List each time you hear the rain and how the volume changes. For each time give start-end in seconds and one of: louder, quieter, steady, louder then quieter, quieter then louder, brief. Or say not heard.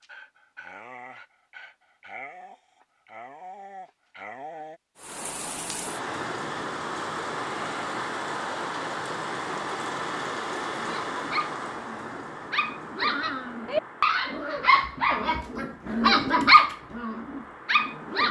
5.0-18.2 quieter.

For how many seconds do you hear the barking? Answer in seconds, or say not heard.
12 s.